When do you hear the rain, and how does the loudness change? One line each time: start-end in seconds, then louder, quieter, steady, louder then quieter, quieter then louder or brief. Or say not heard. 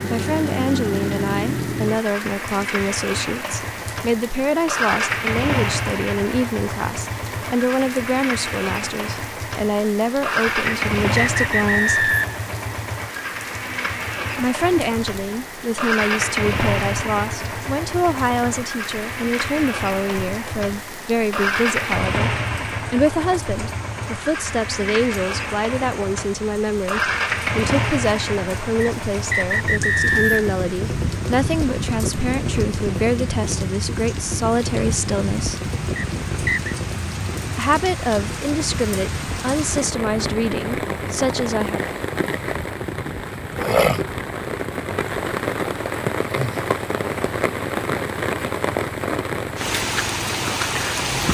0.0-51.2 louder.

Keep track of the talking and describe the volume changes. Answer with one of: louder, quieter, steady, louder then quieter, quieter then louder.
steady.